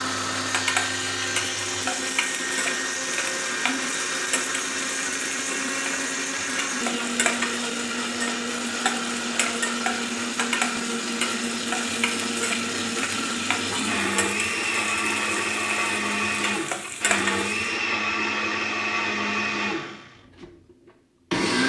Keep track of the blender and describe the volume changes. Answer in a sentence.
The loudness of the blender stays about the same.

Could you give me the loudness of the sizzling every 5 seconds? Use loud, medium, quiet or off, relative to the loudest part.
loud, loud, loud, loud, off.